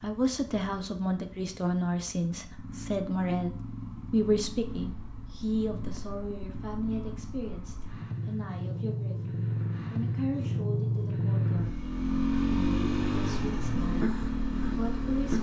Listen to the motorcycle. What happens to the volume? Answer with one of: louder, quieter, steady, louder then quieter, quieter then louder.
louder.